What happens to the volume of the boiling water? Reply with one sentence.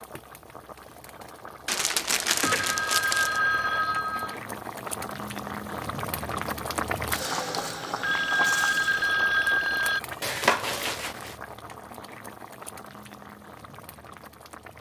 The volume of the boiling water goes up, then down.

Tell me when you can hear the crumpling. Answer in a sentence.
You can hear the crumpling from 1.6 to 3.4 s and from 10.2 to 11.3 s.